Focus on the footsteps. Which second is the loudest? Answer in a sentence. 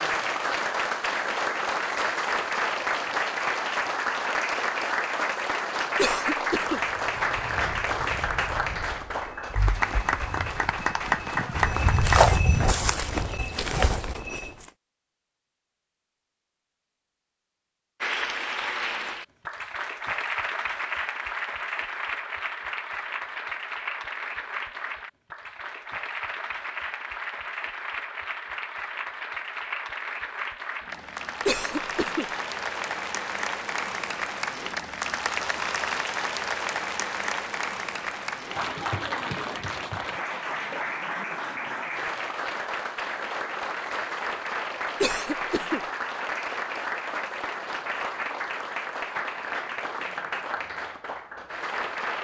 The loudest moment of the footsteps is at 12 seconds.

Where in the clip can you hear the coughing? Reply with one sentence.
The coughing can be heard from 6.0 to 6.8 s, from 31.4 to 32.2 s and from 45.0 to 45.8 s.